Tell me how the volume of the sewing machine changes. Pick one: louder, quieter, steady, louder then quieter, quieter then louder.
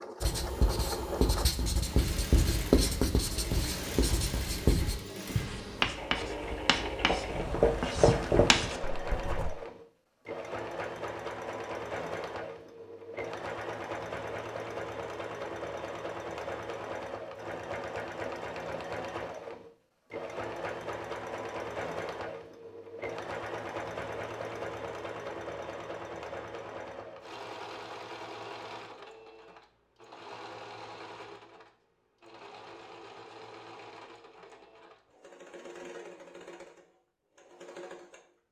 quieter.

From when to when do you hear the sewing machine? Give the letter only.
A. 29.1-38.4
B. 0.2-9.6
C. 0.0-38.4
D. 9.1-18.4
C.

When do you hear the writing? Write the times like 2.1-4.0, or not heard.
0.2-9.6.